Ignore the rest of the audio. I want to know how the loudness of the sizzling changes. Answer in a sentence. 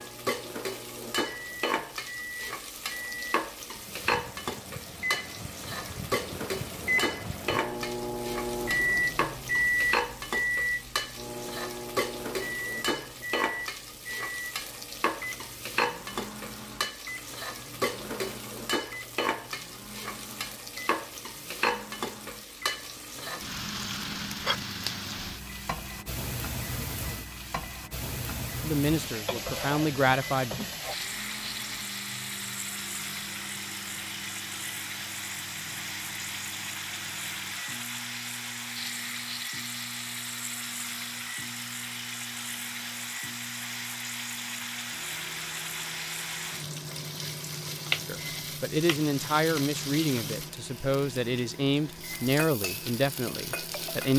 The volume of the sizzling stays about the same.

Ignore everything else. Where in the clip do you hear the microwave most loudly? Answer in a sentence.
The loudest moment of the microwave is at 9 seconds.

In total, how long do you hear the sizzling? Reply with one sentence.
The sizzling can be heard for 54 seconds in total.